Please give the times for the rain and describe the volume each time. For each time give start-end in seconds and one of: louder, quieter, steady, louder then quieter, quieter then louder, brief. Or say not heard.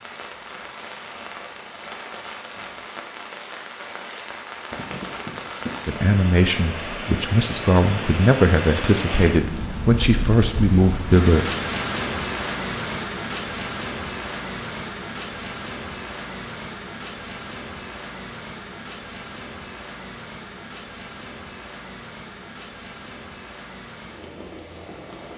0.0-25.3 louder then quieter.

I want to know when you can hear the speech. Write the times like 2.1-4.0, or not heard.
5.8-11.4.